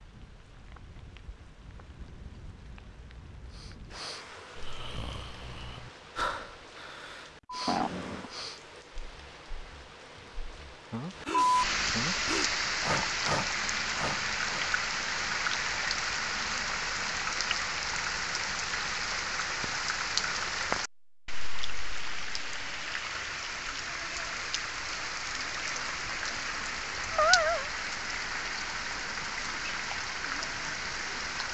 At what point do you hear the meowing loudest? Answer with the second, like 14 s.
27 s.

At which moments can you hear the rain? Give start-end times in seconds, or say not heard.
0.0-31.4.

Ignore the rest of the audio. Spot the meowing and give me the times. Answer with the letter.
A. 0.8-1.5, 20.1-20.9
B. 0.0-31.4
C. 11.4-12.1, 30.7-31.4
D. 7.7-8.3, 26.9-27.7
D.